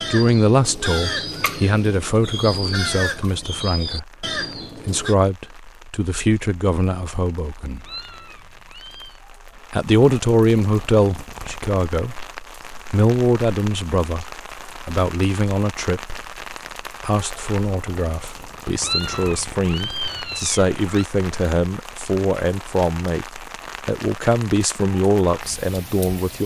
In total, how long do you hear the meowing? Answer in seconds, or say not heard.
4 s.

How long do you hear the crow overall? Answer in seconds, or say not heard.
5 s.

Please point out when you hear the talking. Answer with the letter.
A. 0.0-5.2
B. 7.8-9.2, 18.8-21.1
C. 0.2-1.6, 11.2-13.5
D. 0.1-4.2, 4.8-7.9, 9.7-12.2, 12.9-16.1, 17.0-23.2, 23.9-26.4
D.